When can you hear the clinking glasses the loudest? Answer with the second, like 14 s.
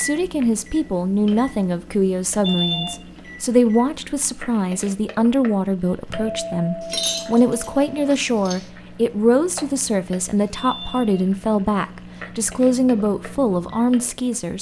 7 s.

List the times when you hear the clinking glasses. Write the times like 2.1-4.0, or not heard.
6.8-8.7.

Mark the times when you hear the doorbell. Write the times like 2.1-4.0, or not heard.
2.4-3.0, 6.1-7.8, 10.5-11.2.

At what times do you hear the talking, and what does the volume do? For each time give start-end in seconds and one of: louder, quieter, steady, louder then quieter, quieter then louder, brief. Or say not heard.
0.0-14.5 steady.